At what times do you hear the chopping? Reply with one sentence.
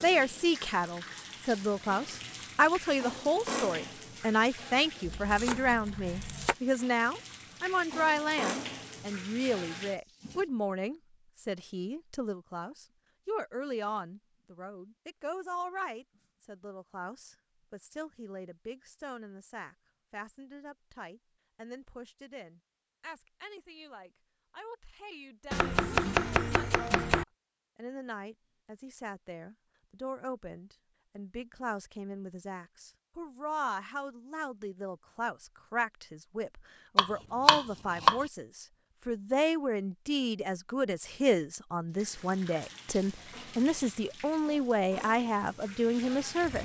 You can hear the chopping from 5.0 to 6.5 s, from 25.5 to 27.2 s and from 37.0 to 38.2 s.